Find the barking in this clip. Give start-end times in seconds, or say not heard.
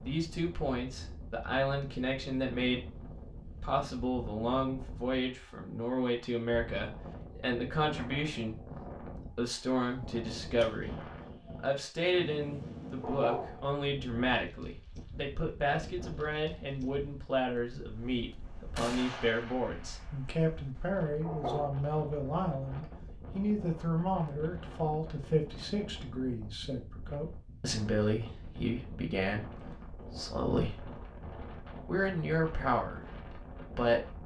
13.0-13.7, 21.2-21.8.